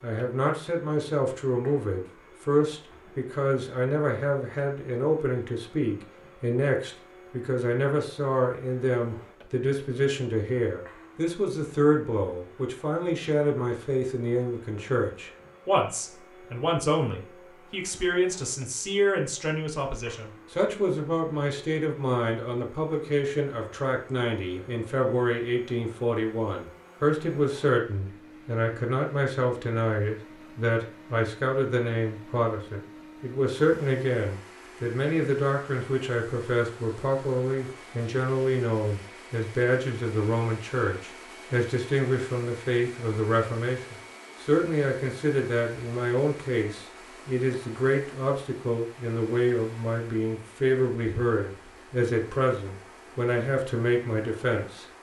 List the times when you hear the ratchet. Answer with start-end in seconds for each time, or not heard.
not heard.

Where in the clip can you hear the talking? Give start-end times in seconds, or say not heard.
0.0-54.9.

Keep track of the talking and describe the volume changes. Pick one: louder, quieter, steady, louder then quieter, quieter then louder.
steady.